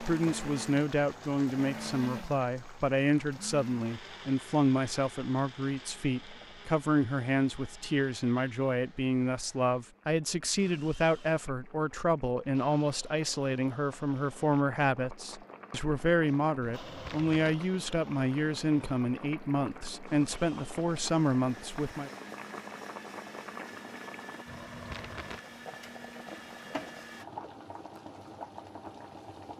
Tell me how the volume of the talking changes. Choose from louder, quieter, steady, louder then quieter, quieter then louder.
steady.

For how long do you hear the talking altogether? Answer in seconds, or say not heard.
22 s.